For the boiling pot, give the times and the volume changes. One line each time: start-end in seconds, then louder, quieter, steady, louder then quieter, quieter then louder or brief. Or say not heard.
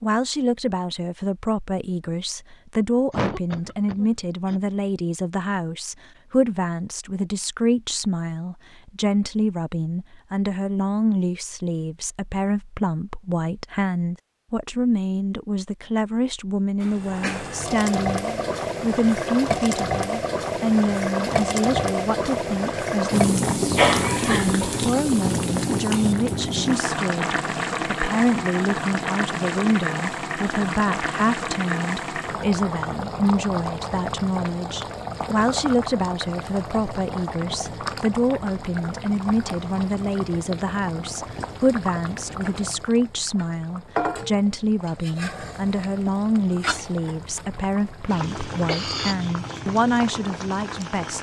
16.8-51.1 quieter.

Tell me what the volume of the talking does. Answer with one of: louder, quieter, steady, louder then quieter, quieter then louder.
steady.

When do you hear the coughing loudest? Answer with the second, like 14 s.
24 s.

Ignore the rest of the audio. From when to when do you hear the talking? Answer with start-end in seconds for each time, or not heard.
0.0-51.1.